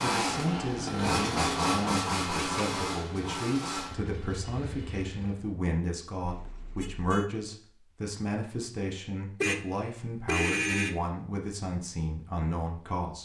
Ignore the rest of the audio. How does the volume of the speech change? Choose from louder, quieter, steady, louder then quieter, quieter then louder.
steady.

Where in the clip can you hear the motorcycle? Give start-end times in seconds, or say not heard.
0.0-5.5.